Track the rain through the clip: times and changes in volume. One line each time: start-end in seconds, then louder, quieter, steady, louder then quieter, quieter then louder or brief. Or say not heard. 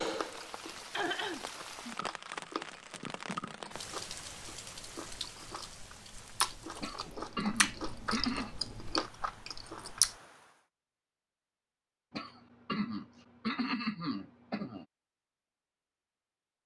0.0-10.7 quieter.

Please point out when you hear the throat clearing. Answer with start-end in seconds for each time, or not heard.
0.9-1.4, 6.8-8.5, 12.1-14.8.